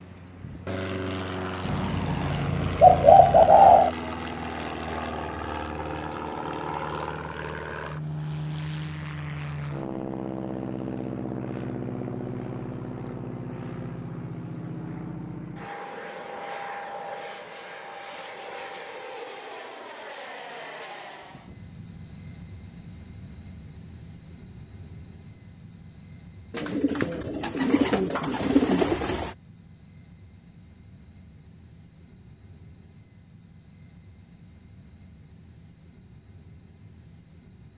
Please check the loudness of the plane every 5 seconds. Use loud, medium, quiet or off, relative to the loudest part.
loud, loud, loud, medium, medium, quiet, quiet, quiet.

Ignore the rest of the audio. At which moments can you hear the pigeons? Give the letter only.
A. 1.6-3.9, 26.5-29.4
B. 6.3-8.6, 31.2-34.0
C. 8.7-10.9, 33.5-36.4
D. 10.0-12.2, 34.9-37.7
A.